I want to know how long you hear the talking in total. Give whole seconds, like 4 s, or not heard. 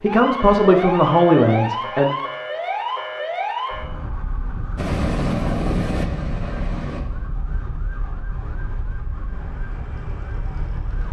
2 s.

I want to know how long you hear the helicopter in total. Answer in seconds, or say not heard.
2 s.